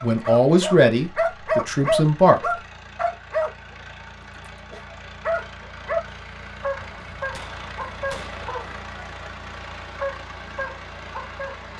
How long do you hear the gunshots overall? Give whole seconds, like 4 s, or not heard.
2 s.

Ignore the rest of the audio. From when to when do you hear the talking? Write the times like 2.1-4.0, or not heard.
0.0-2.4.